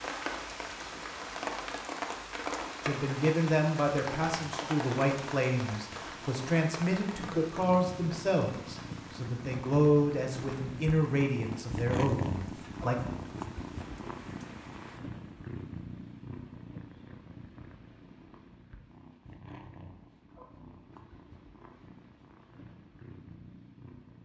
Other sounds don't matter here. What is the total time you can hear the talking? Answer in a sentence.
You can hear the talking for 10 seconds altogether.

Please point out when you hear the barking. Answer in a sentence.
You can't hear the barking here.